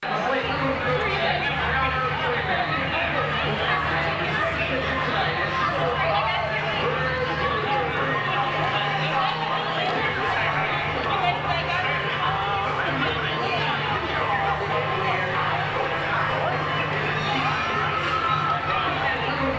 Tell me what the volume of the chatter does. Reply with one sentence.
The loudness of the chatter stays about the same.